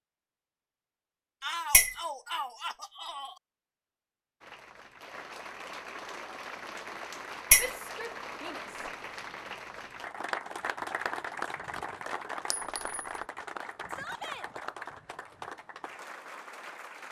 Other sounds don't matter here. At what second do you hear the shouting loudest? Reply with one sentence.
The loudest moment of the shouting is at 2 seconds.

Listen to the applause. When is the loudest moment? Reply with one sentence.
The loudest moment of the applause is at 11 seconds.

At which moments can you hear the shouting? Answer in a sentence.
You can hear the shouting from 1.4 to 3.4 s, from 7.5 to 8.8 s and from 13.8 to 14.4 s.